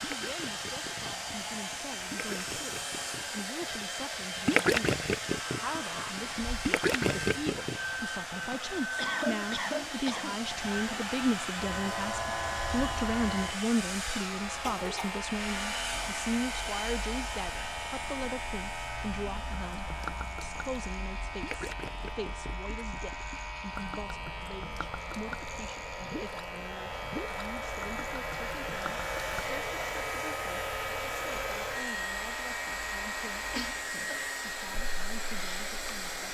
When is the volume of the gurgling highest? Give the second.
5 s.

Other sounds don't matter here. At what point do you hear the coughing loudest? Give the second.
9 s.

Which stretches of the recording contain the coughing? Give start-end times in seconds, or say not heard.
8.4-10.4, 14.6-15.2, 33.4-34.2.